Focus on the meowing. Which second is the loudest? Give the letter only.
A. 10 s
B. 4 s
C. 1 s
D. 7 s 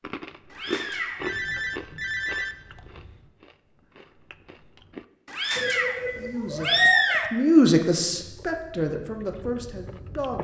D.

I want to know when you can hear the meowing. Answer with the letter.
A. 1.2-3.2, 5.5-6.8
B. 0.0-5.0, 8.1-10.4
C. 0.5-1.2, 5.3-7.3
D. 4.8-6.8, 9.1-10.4
C.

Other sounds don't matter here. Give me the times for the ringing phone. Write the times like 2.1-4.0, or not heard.
1.2-3.2, 5.5-6.8.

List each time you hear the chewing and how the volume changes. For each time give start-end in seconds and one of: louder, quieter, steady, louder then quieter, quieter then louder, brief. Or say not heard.
0.0-5.0 quieter
8.1-10.4 brief.